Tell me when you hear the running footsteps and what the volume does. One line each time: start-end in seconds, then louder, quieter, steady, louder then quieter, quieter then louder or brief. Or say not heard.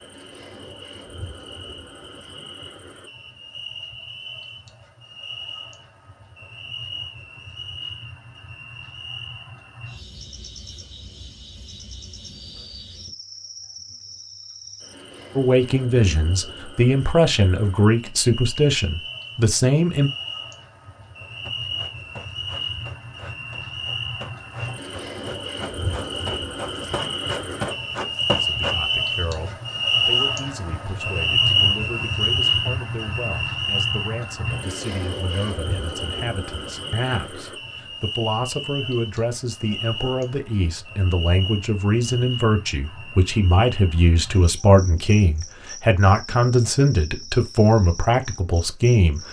21.4-28.8 louder.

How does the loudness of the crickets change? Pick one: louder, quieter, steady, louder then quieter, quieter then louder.
louder then quieter.